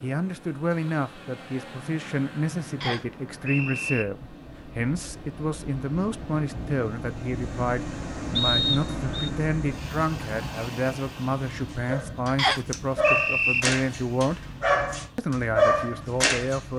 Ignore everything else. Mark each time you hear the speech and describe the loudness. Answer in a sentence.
You can hear the speech from 0.0 to 14.4 s, at a steady volume; and briefly from 15.2 to 16.7 s.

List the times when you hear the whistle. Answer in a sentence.
You can hear the whistle from 2.8 to 4.0 s, from 8.3 to 9.3 s and from 12.3 to 13.7 s.